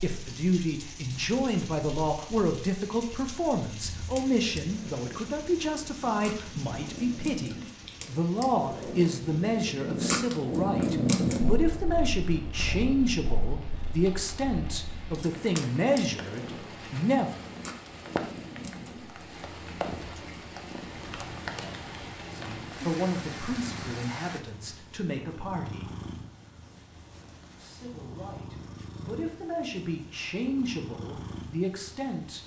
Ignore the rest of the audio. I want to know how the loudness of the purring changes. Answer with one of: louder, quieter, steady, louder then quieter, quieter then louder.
louder then quieter.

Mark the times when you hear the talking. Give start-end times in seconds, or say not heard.
0.0-17.4, 22.3-25.9, 27.6-32.4.